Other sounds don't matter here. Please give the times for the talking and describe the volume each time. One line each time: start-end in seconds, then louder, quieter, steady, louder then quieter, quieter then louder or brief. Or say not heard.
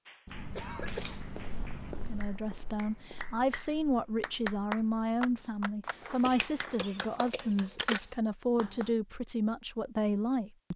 2.0-10.7 steady.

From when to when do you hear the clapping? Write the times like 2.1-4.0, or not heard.
0.1-8.9.